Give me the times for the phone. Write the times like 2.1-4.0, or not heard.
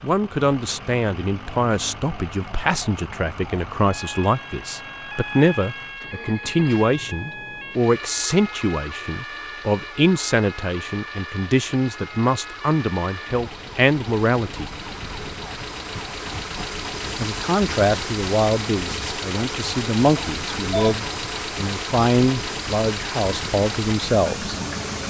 20.1-20.9.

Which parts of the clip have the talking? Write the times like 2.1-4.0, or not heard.
0.0-14.7, 17.2-24.6.